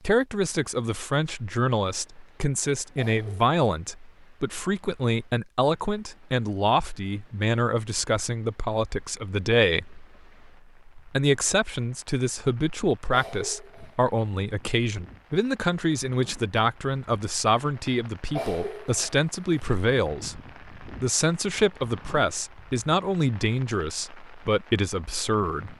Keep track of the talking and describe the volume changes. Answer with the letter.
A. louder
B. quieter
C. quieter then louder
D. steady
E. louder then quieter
D.